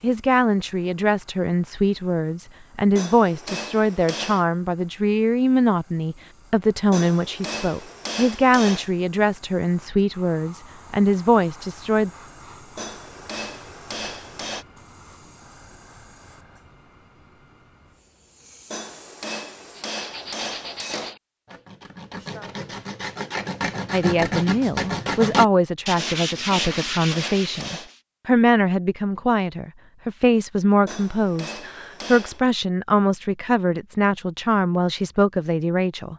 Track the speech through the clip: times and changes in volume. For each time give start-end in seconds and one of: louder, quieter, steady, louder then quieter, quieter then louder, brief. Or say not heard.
0.0-12.1 steady
23.9-36.1 steady.